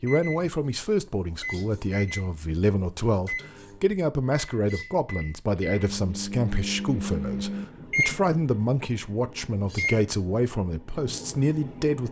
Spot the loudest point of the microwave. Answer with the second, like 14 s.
8 s.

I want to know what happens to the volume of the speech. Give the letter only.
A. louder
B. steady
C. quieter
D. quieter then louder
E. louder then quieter
B.